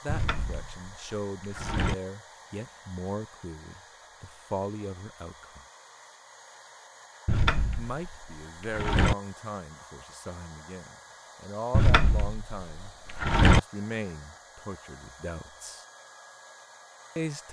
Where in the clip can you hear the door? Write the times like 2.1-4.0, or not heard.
0.1-1.9, 7.2-9.2, 11.7-13.6.